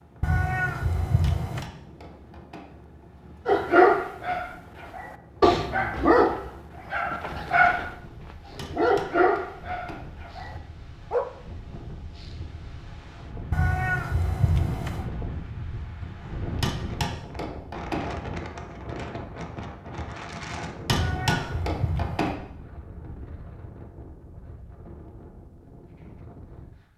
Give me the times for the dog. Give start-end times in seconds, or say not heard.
3.5-11.2.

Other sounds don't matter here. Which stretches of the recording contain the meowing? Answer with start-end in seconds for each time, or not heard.
0.2-1.6, 13.5-15.1, 20.9-22.4.